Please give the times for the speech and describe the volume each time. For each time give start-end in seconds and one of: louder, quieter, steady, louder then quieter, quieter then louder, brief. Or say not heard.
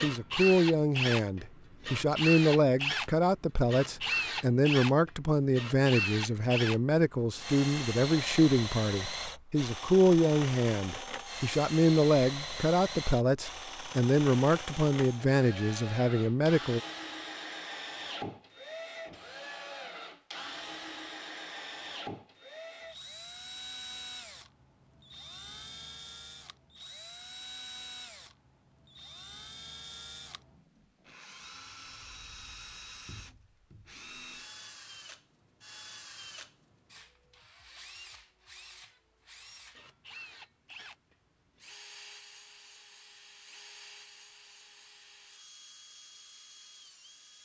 0.0-16.8 steady.